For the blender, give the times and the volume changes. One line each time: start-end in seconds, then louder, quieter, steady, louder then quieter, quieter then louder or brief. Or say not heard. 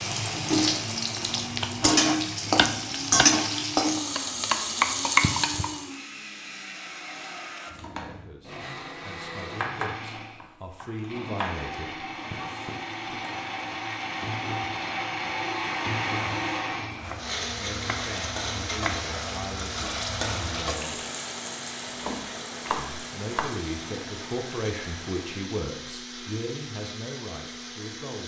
0.0-28.2 louder then quieter.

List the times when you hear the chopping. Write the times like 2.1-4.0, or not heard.
1.2-3.3, 9.6-11.6, 17.0-19.1, 21.9-23.5.